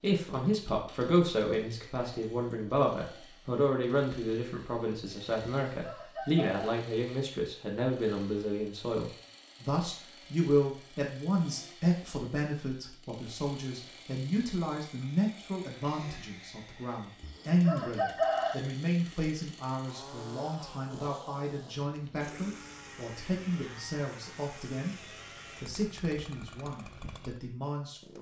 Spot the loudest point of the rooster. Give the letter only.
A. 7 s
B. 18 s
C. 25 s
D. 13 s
B.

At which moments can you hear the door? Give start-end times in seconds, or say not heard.
not heard.